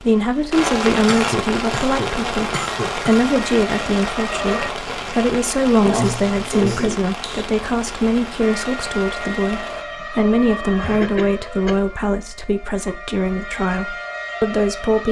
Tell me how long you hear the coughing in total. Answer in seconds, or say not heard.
5 s.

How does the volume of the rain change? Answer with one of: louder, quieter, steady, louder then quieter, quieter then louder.
quieter.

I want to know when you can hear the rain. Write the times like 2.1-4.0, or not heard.
0.0-9.8.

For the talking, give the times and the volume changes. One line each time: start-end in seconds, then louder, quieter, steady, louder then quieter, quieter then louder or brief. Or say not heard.
0.0-15.0 steady.